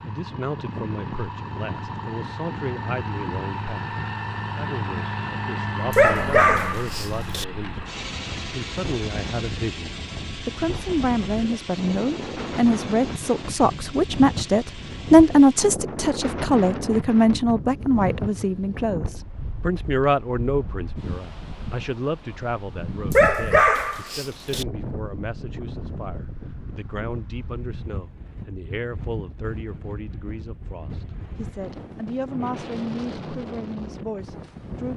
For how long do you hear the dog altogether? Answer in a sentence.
You can hear the dog for 3 seconds altogether.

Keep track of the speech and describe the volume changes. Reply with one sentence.
The volume of the speech goes up, then down.